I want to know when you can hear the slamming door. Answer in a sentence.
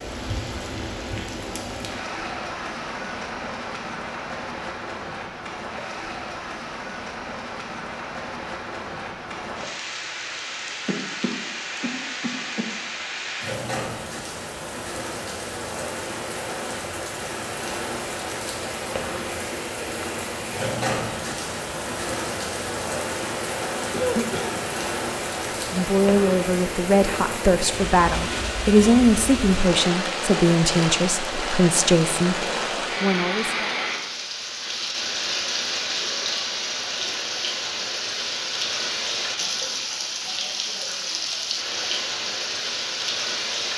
The slamming door can't be heard in this clip.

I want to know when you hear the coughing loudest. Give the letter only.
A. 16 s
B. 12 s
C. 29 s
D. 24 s
D.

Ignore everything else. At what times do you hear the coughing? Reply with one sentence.
The coughing can be heard from 10.8 to 12.7 s and from 23.9 to 24.6 s.